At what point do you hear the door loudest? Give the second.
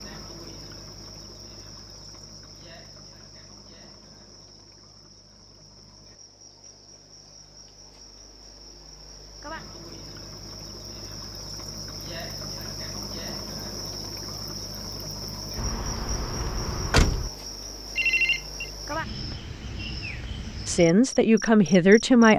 17 s.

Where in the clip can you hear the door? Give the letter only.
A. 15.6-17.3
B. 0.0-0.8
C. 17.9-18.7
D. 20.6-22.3
A.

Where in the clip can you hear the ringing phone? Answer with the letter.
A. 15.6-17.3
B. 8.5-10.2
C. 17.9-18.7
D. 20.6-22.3
C.